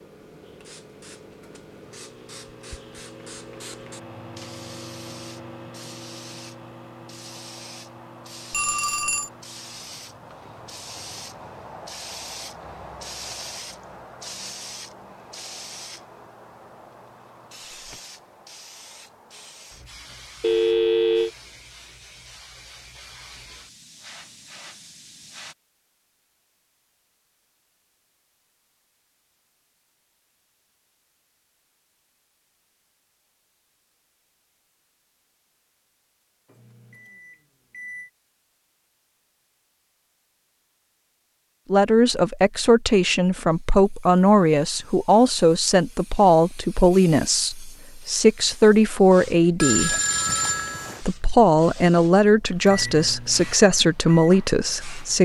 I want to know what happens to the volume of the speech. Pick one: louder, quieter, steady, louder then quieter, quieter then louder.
steady.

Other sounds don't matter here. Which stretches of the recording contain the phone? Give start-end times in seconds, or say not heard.
8.5-9.3, 20.4-21.3, 49.6-51.0.